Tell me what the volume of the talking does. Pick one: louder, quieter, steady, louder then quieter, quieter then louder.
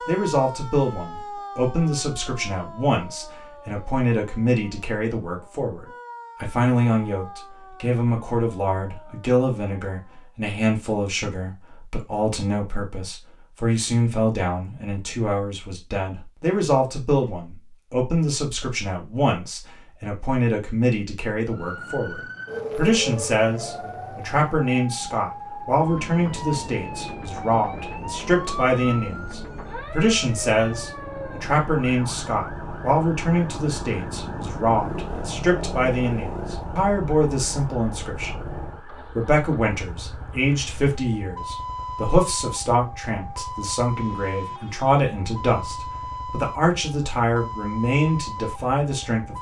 steady.